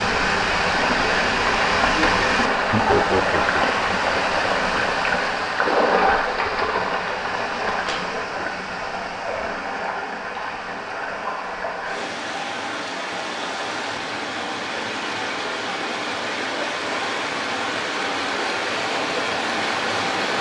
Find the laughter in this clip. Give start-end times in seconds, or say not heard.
2.7-3.8.